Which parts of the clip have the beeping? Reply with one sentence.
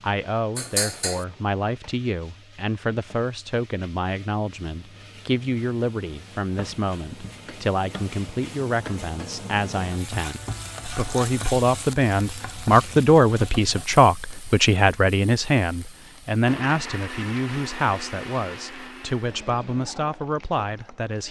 The beeping can't be heard in this clip.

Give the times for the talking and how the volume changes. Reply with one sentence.
You can hear the talking from 0.0 to 21.2 s, getting louder then quieter.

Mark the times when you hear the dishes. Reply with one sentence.
You can hear the dishes from 0.6 to 1.2 s.